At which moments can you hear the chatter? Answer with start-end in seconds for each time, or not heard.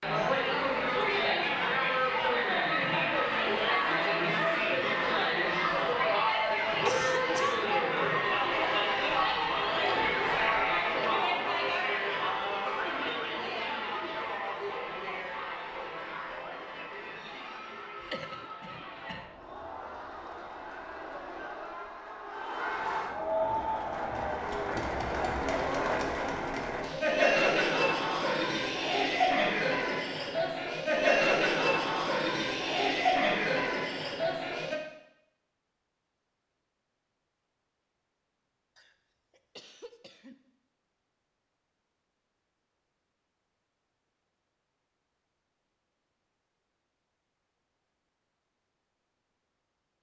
0.0-34.8.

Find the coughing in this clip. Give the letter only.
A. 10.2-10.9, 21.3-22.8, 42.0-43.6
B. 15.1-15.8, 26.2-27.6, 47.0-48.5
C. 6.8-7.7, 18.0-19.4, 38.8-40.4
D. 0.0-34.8
C.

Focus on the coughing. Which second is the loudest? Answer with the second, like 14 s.
7 s.